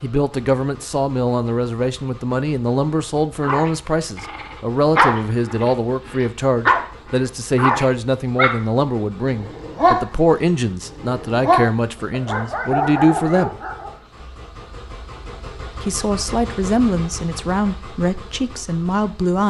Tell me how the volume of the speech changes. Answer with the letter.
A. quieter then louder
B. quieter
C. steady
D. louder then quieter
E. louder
C.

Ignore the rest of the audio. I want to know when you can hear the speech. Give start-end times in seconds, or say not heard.
0.0-13.6, 15.8-19.4.